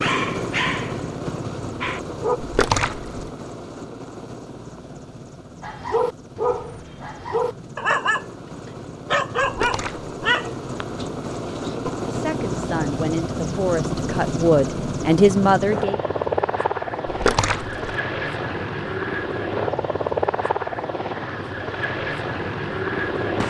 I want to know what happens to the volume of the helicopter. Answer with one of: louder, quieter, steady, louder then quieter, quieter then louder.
quieter then louder.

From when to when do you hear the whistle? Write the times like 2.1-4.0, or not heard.
not heard.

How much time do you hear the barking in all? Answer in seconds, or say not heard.
8 s.